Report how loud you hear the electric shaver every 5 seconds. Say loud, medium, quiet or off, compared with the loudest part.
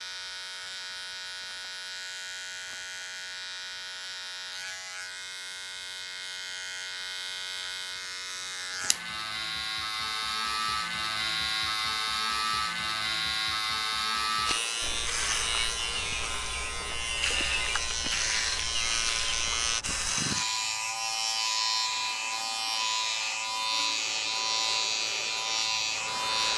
medium, medium, loud, loud, loud, loud.